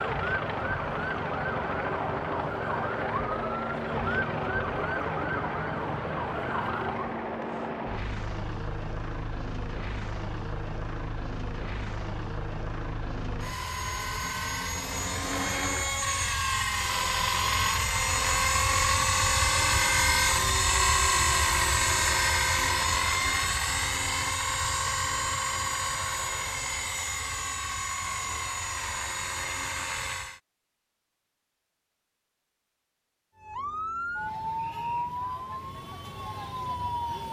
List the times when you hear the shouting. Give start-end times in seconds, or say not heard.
not heard.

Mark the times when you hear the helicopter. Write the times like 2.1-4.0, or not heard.
0.0-30.4.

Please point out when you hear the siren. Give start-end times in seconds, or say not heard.
0.0-7.2, 19.4-22.3, 33.4-37.2.